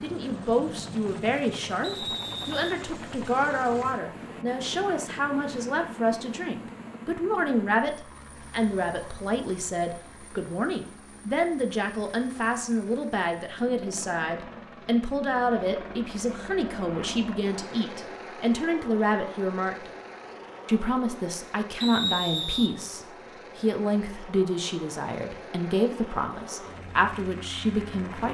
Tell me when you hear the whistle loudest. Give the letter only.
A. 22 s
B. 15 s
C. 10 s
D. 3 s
A.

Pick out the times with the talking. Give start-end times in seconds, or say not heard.
0.0-19.9, 20.6-28.2.